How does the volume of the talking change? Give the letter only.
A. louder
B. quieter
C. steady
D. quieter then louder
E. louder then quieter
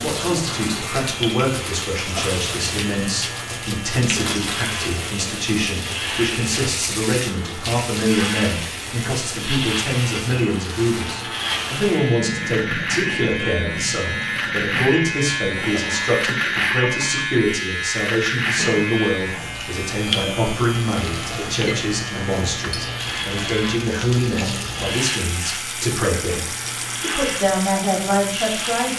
C.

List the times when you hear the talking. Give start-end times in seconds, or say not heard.
0.0-28.9.